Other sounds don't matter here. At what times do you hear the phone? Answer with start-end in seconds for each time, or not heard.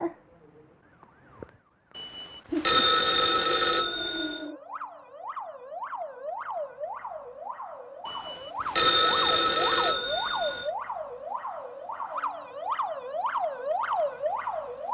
1.9-4.5, 8.1-10.7.